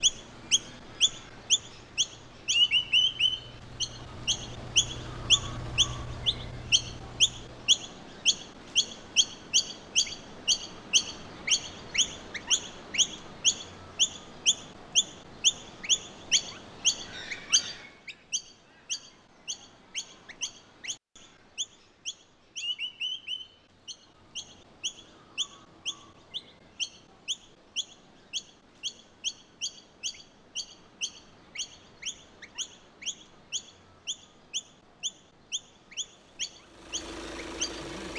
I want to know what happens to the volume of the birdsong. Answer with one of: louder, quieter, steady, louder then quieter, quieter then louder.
quieter.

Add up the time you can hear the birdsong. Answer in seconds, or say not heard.
38 s.